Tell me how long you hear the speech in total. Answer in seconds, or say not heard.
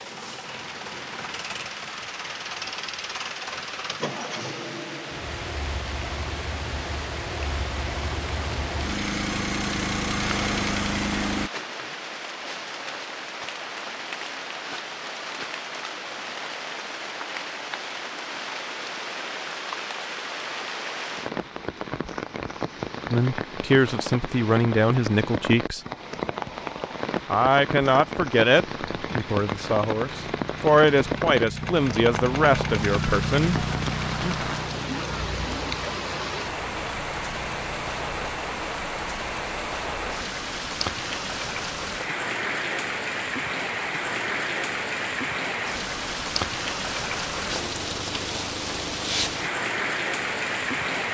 9 s.